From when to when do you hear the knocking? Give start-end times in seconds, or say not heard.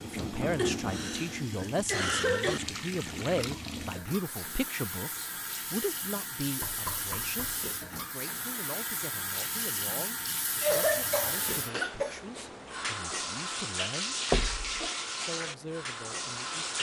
0.1-1.2, 6.6-7.7, 14.3-14.8.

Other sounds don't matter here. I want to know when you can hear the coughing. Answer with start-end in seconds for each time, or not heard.
0.6-2.6, 10.6-12.2.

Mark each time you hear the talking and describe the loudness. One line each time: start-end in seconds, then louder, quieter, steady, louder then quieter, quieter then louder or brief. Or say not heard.
0.0-14.2 quieter
15.2-16.7 brief.